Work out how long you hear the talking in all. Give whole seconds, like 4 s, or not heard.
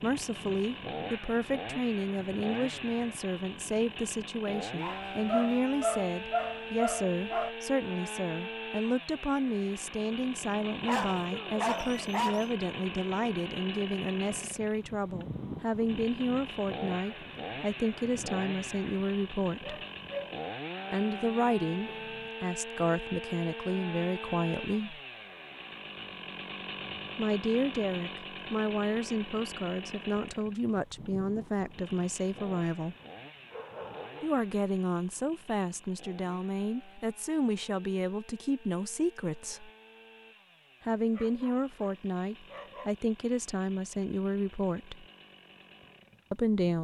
40 s.